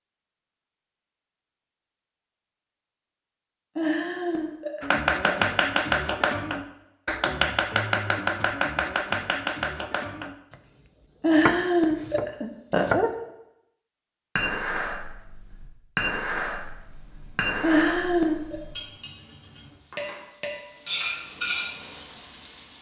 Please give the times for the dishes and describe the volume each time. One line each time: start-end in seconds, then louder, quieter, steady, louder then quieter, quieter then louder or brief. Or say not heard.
14.3-21.8 steady.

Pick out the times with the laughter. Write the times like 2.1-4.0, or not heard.
3.8-5.3, 11.2-13.1, 17.6-18.6.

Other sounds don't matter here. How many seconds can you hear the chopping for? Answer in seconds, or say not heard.
8 s.